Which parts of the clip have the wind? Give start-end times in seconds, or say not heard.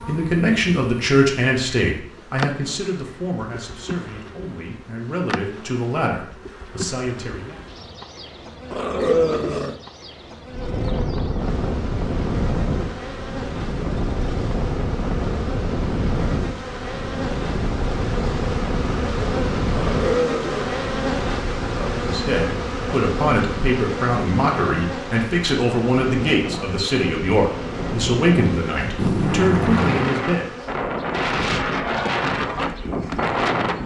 10.5-33.8.